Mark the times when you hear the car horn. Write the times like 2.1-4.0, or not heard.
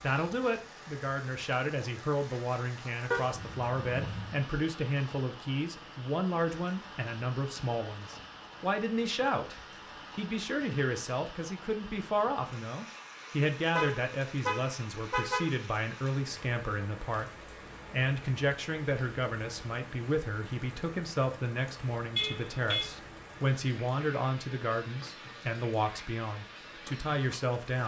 3.1-4.4, 13.8-15.6, 22.1-22.9.